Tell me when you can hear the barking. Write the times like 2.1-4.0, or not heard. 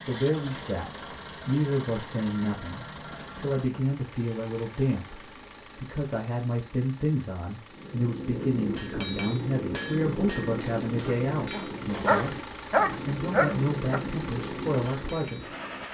11.1-14.0.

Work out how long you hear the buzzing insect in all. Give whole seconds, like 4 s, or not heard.
not heard.